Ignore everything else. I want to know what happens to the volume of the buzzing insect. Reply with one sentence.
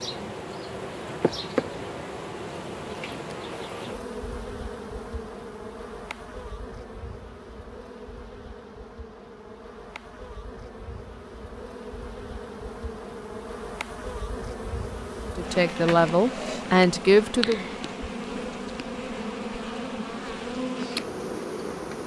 The volume of the buzzing insect goes down, then up.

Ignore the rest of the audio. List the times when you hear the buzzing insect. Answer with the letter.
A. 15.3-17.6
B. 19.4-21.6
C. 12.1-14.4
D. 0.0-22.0
D.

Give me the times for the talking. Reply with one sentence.
The talking can be heard from 15.3 to 17.6 s.